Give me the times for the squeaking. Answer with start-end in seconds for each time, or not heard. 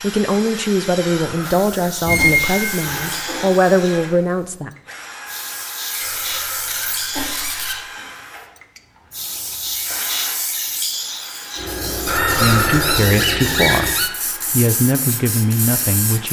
2.0-3.5, 5.9-7.8, 12.1-14.1.